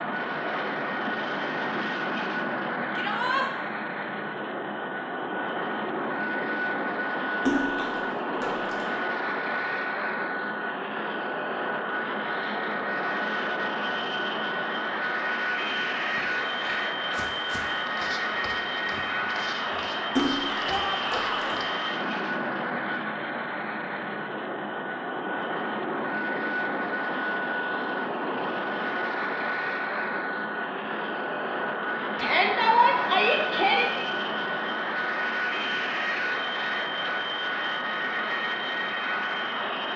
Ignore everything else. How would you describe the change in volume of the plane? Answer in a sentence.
The volume of the plane stays about the same.